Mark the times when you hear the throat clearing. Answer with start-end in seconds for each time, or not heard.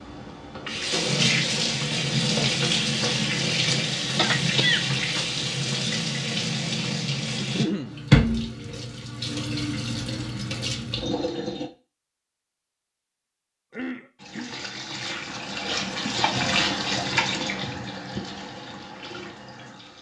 4.2-4.8, 7.3-8.0, 13.7-14.6.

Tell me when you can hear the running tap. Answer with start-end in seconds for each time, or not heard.
0.0-11.7, 14.2-19.9.